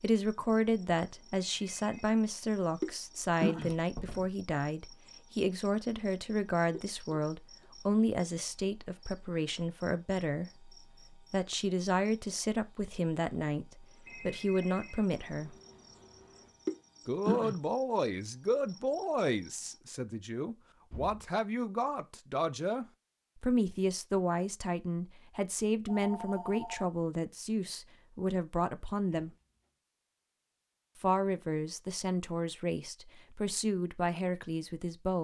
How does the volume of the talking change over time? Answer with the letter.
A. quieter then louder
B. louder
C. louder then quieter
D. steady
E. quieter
D.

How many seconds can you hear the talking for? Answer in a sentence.
You can hear the talking for 32 seconds altogether.